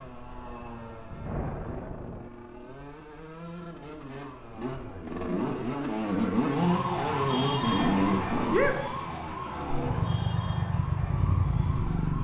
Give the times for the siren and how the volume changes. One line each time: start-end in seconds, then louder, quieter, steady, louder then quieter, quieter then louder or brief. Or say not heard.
6.5-12.1 quieter.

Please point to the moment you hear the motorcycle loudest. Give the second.
8 s.